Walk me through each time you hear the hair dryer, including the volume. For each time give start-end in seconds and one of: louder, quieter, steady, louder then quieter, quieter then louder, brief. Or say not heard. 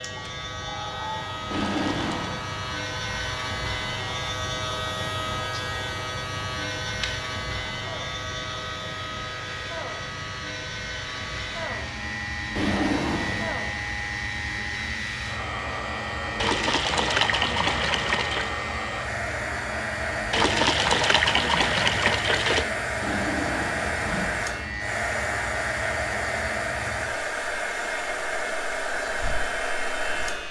0.0-30.4 louder.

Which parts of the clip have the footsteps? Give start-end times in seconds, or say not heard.
not heard.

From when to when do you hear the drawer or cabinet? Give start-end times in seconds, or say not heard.
1.5-2.4, 12.6-13.7, 23.0-24.4.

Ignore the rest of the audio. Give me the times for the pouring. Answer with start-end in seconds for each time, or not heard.
1.6-2.1, 16.4-18.6, 20.3-22.6.